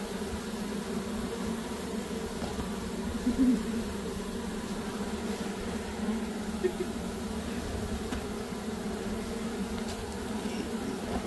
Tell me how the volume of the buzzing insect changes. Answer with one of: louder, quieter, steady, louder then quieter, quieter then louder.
steady.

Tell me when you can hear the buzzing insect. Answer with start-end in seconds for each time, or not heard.
0.0-11.2.